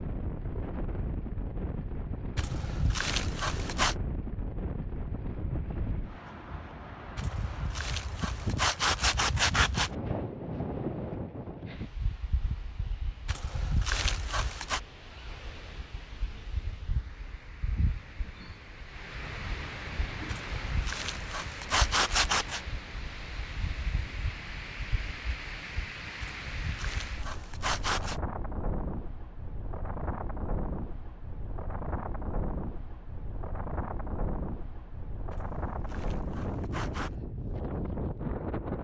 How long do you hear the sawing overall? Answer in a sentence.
You can hear the sawing for 12 seconds altogether.